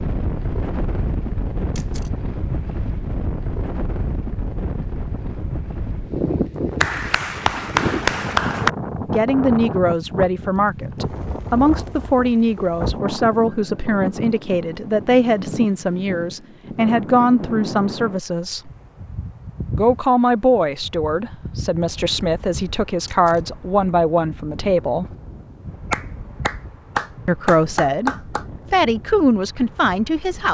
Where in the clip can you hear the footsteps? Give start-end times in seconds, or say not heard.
not heard.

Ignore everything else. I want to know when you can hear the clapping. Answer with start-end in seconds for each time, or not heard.
6.8-8.7, 25.9-28.4.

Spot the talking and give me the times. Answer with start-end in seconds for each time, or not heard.
9.1-18.7, 19.8-25.1, 27.2-30.5.